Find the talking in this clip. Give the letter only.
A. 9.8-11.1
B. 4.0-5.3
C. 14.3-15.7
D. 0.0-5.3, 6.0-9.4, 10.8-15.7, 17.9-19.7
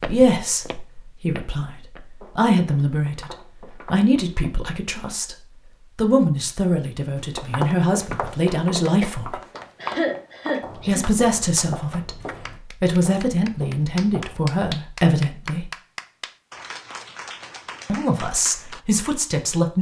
D.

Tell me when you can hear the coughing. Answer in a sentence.
You can hear the coughing from 9.8 to 11.1 s.